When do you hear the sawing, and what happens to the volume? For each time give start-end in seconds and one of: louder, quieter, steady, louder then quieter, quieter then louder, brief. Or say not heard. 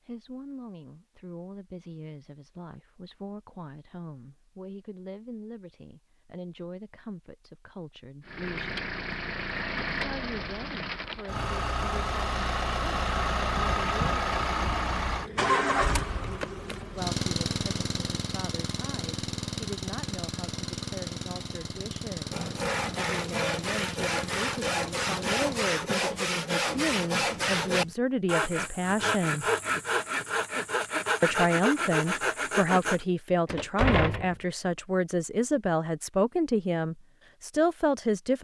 22.3-33.0 steady.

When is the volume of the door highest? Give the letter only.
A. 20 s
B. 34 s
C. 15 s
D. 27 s
B.